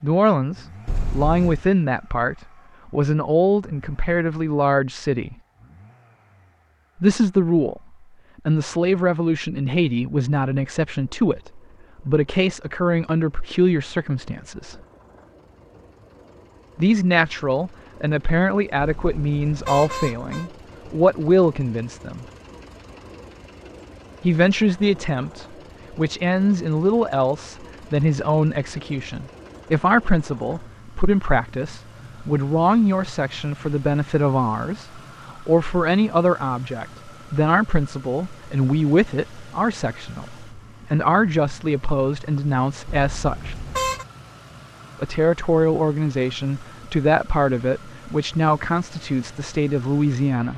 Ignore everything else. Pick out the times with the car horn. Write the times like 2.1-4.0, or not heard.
0.8-1.6, 18.8-20.5, 42.9-44.0.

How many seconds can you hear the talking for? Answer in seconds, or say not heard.
43 s.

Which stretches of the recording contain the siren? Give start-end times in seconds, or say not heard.
not heard.